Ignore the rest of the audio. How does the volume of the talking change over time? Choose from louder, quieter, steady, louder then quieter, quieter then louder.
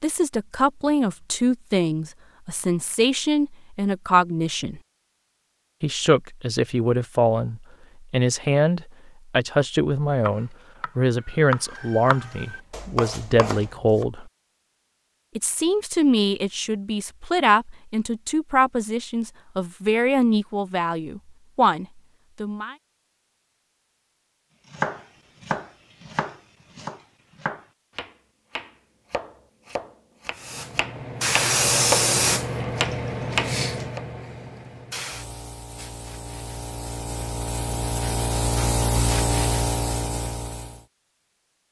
steady.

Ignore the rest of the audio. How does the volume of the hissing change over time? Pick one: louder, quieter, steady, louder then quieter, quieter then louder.
quieter then louder.